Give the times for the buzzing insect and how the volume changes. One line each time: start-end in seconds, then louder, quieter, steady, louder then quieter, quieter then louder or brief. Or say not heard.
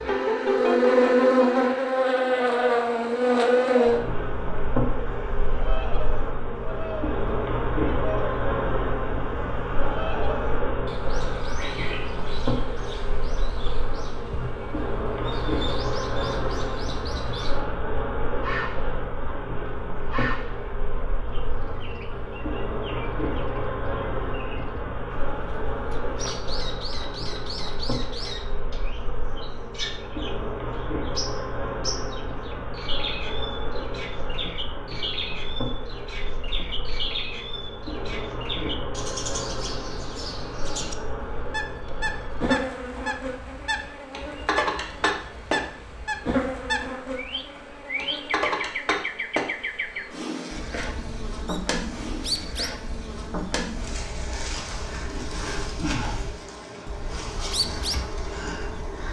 0.0-59.0 quieter.